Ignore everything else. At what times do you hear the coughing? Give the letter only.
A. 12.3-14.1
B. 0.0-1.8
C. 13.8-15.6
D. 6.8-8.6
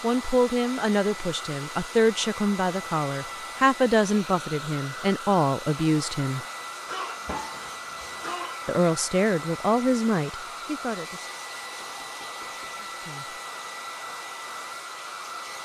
D.